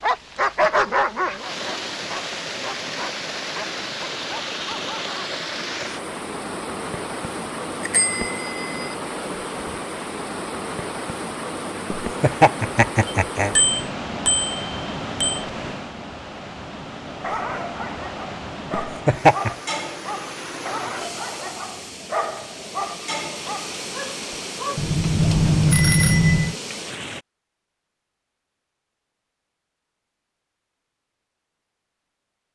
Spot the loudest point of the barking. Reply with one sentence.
The volume of the barking peaks at 1 second.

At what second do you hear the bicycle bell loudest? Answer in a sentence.
The volume of the bicycle bell peaks at 26 seconds.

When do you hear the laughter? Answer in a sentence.
You can hear the laughter from 11.9 to 13.6 s and from 18.7 to 19.5 s.